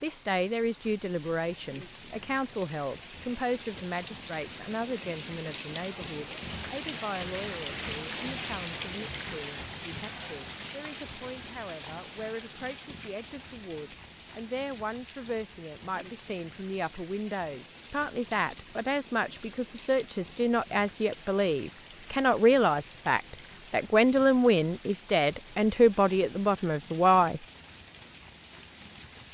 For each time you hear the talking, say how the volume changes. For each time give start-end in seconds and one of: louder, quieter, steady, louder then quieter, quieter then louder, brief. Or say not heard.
0.0-27.4 quieter then louder.